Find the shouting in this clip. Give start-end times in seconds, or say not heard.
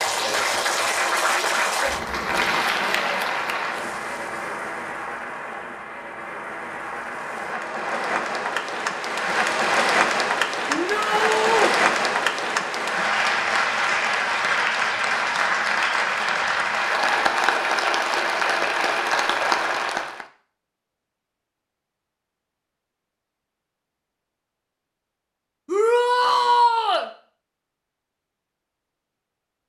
10.7-11.8, 25.6-27.1.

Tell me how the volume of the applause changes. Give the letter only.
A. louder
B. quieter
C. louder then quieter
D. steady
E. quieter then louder
E.